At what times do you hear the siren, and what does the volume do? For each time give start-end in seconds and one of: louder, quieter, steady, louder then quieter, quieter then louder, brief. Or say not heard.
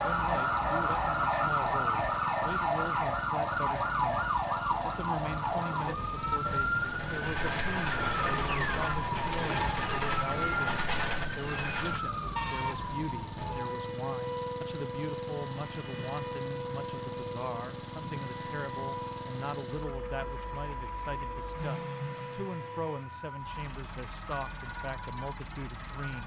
0.0-26.2 quieter.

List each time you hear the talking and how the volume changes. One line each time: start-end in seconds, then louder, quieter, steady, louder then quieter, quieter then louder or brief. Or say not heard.
0.0-26.2 steady.